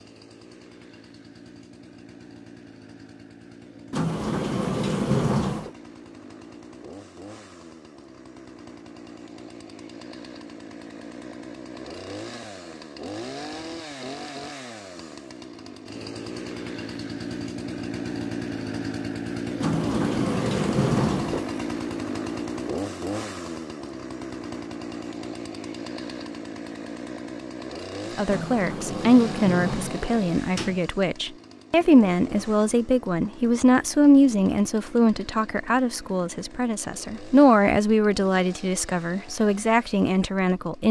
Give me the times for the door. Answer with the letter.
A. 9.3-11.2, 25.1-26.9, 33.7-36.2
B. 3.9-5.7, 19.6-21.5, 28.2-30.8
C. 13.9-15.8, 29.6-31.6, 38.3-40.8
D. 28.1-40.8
B.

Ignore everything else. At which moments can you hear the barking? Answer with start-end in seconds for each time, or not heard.
not heard.